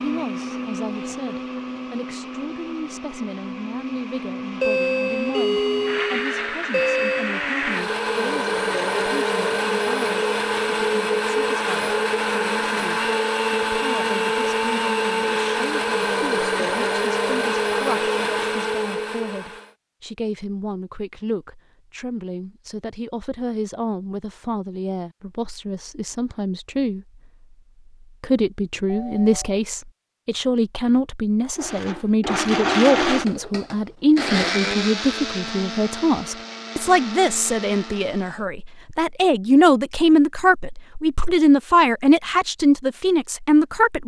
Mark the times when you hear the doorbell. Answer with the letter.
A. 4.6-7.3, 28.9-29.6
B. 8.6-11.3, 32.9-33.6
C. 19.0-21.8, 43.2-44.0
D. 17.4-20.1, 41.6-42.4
A.